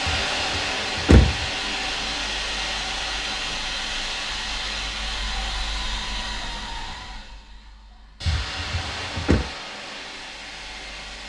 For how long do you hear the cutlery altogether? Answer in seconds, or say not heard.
not heard.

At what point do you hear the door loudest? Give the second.
1 s.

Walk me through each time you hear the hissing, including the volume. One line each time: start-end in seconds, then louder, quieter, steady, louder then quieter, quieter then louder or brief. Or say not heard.
0.0-11.2 quieter.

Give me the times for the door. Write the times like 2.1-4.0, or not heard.
0.1-1.4, 8.2-9.4.